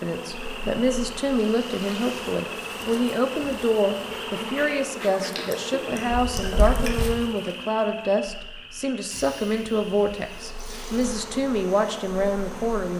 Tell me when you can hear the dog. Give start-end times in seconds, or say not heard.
not heard.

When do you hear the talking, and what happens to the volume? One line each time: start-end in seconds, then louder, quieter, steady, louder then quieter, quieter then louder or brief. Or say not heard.
0.0-12.9 steady.